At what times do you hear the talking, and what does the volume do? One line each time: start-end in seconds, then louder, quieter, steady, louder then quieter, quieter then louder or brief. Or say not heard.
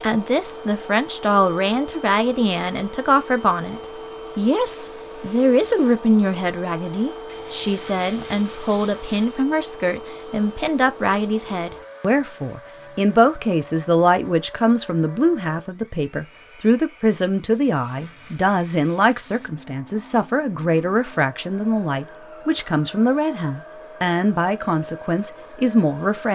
0.0-26.2 steady.